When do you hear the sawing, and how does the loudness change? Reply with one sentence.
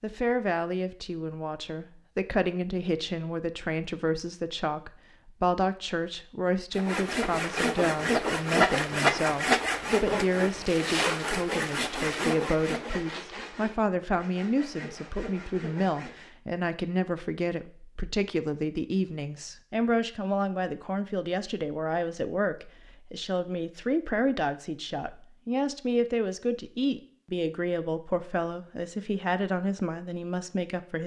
The sawing can be heard from 6.8 to 16.3 s, getting quieter.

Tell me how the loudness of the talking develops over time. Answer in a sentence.
The loudness of the talking stays about the same.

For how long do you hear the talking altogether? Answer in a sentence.
The talking can be heard for 31 seconds in total.